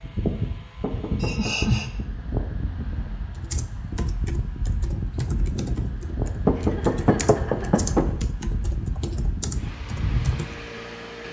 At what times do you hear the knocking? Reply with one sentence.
You can hear the knocking from 0.8 to 1.6 s and from 6.5 to 8.2 s.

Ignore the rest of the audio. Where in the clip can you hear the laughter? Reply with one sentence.
The laughter can be heard from 1.2 to 1.9 s and from 6.5 to 7.9 s.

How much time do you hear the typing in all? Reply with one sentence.
You can hear the typing for 7 seconds altogether.